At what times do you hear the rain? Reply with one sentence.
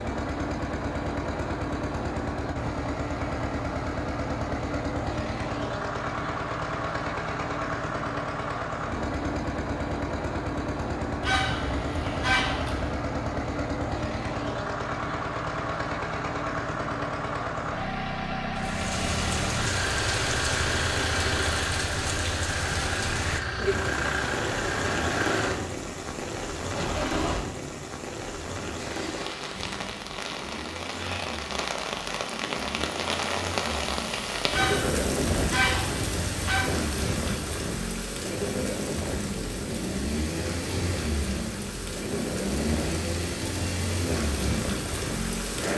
The rain can be heard from 18.6 to 45.7 s.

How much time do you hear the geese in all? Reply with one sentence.
The geese can be heard for 4 seconds in total.